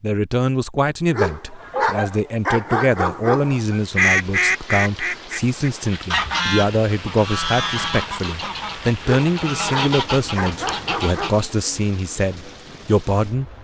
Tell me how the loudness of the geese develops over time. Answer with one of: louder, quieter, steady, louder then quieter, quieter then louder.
louder then quieter.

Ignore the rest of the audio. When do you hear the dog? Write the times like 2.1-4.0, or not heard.
1.1-3.6, 9.0-11.4.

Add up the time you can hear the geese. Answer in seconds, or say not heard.
10 s.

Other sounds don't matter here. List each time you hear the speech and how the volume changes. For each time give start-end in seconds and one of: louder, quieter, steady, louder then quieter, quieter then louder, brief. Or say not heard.
0.0-13.5 steady.